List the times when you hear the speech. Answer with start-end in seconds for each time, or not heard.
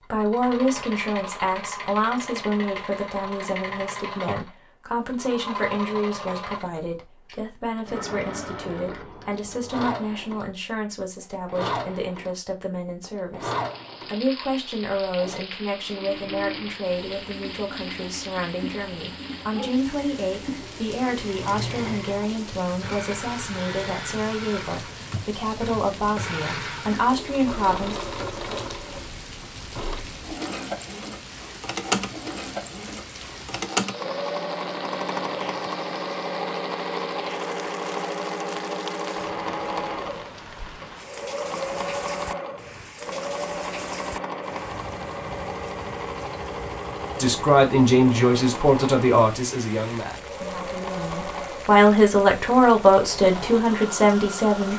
0.1-27.9, 47.1-54.7.